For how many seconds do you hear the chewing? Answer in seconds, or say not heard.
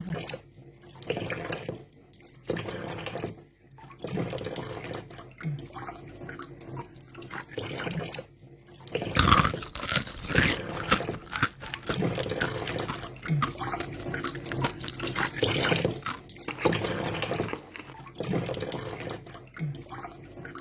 9 s.